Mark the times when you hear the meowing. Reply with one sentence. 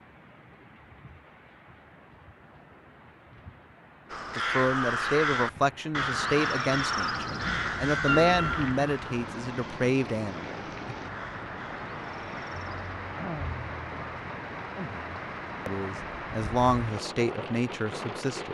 You can hear the meowing from 8.1 to 8.7 s.